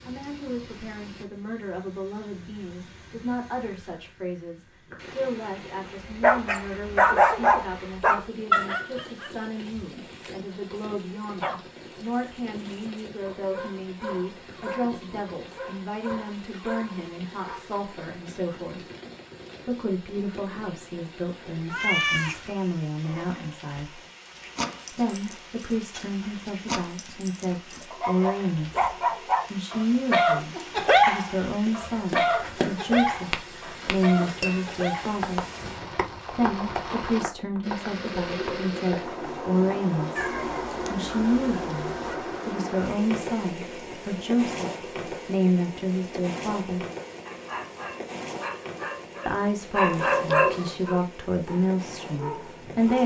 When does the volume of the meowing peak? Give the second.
22 s.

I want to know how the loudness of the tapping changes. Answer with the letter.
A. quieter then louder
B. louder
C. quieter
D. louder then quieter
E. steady
C.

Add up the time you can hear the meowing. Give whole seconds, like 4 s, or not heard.
3 s.